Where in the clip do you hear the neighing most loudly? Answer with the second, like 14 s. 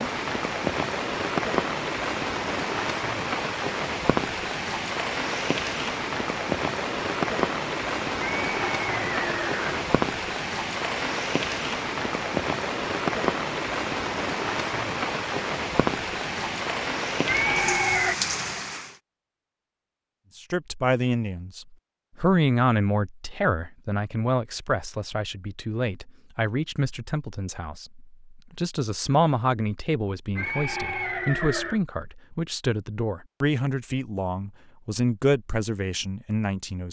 18 s.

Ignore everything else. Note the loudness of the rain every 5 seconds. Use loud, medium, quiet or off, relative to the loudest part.
loud, loud, loud, loud, off, off, off, off.